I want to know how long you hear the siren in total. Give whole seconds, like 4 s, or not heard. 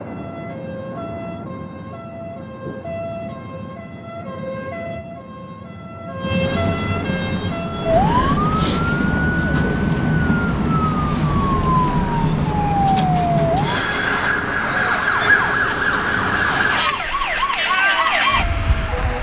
19 s.